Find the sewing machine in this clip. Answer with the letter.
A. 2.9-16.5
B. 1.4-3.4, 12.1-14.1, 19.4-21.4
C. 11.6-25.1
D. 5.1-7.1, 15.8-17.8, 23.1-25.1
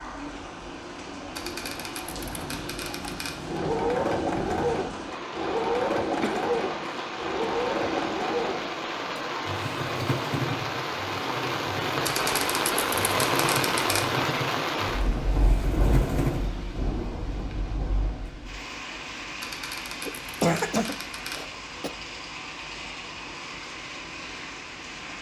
A.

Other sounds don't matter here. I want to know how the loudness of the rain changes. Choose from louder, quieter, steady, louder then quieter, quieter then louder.
louder then quieter.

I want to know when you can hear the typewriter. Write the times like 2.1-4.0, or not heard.
1.4-3.4, 12.1-14.1, 19.4-21.4.